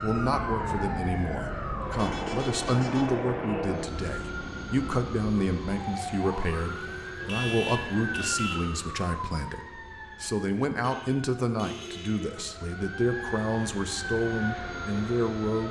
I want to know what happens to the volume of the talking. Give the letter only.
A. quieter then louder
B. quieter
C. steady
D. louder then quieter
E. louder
C.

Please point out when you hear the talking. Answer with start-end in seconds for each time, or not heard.
0.0-15.6.